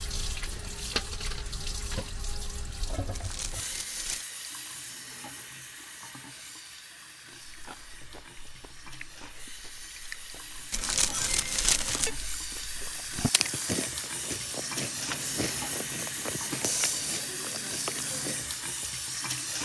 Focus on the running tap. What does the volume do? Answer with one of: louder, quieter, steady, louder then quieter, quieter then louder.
quieter then louder.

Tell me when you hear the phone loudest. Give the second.
12 s.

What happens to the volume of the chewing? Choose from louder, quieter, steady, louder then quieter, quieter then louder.
louder.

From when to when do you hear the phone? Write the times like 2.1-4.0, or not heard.
3.1-4.2, 10.7-12.1.